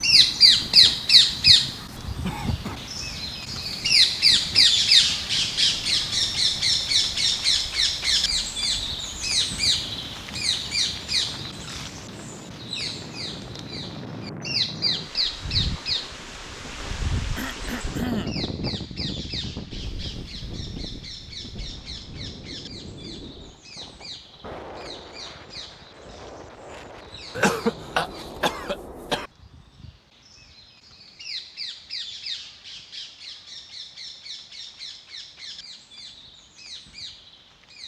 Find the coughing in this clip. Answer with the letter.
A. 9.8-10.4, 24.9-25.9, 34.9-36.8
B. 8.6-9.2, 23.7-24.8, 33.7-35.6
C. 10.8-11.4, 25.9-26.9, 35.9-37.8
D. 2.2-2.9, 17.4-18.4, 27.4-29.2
D.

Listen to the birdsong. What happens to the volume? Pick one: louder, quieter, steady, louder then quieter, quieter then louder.
quieter then louder.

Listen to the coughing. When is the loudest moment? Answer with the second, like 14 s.
28 s.